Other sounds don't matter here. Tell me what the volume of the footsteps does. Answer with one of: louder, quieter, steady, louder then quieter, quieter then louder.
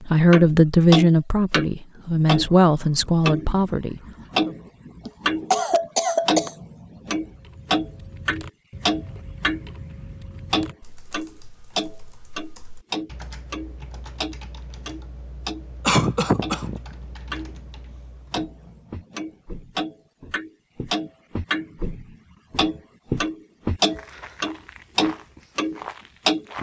louder then quieter.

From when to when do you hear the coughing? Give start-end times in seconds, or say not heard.
5.0-6.5, 15.8-16.8.